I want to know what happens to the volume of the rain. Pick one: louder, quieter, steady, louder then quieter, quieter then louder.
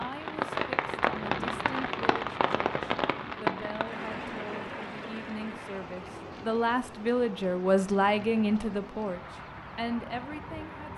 quieter.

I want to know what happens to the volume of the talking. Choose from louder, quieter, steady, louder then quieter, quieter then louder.
louder then quieter.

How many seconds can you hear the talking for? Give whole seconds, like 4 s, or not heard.
11 s.